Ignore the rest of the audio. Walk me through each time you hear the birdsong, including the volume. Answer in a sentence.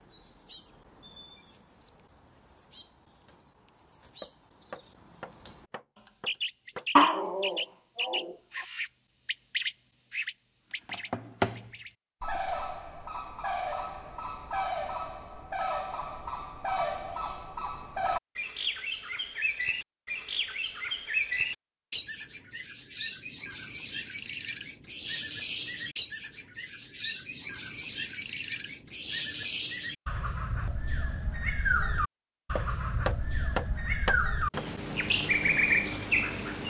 You can hear the birdsong from 0.0 to 36.6 s, getting louder.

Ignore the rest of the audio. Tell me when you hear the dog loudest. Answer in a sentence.
The loudest moment of the dog is at 7 seconds.